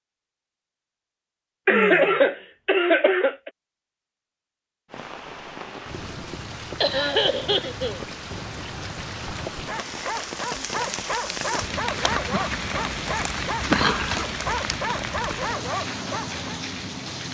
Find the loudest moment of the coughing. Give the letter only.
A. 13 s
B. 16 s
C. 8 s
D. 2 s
D.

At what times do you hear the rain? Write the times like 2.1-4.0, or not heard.
4.9-17.2.